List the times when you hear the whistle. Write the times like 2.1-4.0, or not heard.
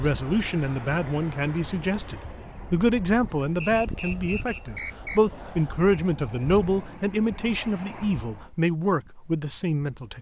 3.6-5.2.